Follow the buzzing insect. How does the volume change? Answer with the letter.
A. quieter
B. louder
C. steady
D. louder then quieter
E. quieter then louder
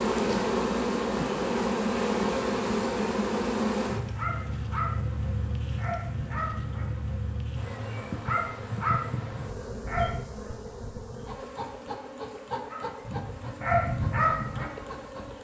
A.